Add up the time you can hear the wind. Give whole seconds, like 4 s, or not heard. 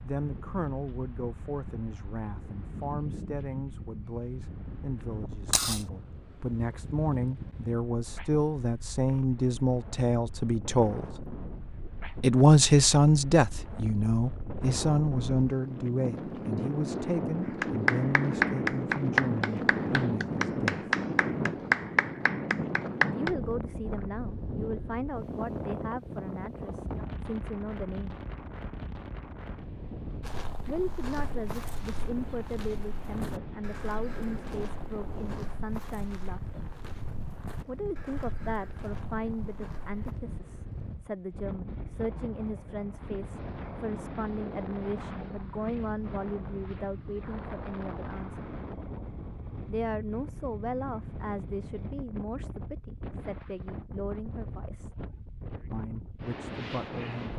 57 s.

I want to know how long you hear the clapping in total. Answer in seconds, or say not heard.
6 s.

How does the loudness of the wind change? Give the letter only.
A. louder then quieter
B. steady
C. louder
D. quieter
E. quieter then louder
A.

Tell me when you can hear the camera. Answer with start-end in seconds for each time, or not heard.
5.5-5.9.